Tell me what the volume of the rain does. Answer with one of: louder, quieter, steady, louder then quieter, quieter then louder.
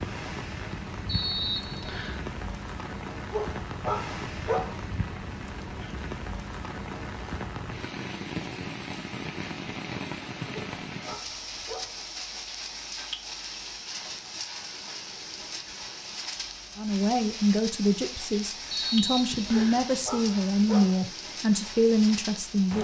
steady.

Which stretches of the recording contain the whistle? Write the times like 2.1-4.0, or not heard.
1.1-2.2, 18.7-19.9.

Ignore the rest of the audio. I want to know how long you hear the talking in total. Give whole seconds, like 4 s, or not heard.
6 s.